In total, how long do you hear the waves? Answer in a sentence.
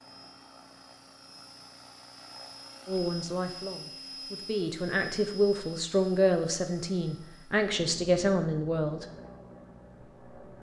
The waves can't be heard in this clip.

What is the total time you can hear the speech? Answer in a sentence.
You can hear the speech for 6 seconds altogether.